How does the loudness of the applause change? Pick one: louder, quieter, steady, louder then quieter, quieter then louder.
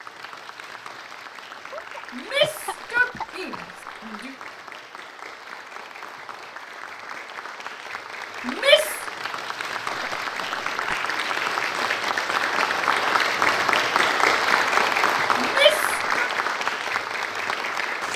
louder.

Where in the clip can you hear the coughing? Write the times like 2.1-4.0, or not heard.
1.7-3.6, 9.8-11.0.